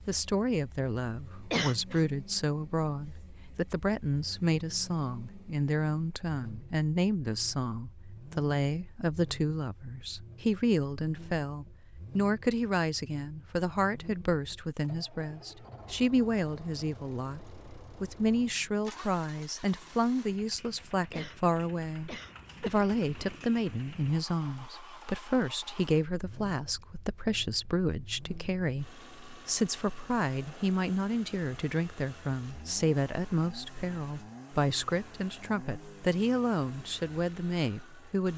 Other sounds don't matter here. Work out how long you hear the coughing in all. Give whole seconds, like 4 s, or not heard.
3 s.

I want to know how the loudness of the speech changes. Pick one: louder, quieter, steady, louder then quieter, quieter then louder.
steady.